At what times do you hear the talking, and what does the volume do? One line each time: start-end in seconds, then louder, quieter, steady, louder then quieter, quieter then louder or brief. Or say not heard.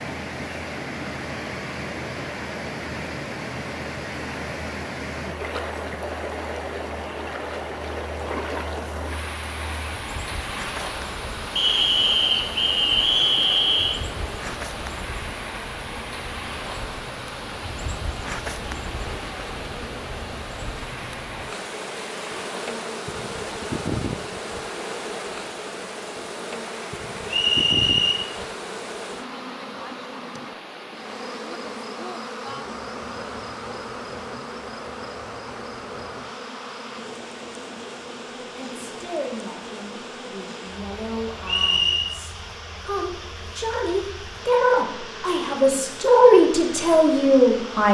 38.5-47.9 louder.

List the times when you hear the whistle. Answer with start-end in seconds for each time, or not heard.
11.6-14.0, 27.2-28.2, 41.5-42.1.